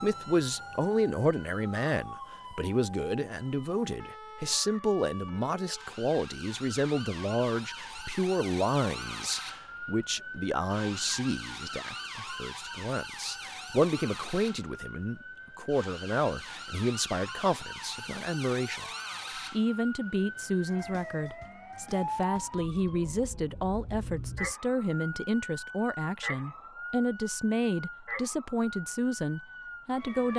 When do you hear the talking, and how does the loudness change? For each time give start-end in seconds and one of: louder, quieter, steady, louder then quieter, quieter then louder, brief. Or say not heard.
0.0-18.9 steady
19.5-30.3 steady.